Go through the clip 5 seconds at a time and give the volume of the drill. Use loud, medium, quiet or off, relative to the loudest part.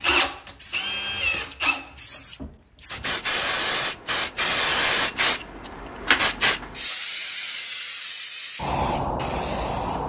loud, off.